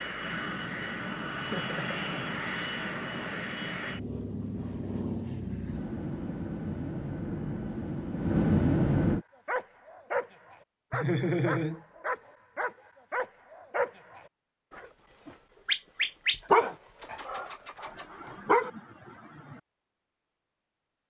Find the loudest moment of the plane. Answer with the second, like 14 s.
9 s.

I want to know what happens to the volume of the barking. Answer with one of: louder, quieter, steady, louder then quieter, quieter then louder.
louder then quieter.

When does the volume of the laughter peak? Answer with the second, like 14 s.
11 s.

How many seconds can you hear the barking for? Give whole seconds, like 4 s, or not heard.
9 s.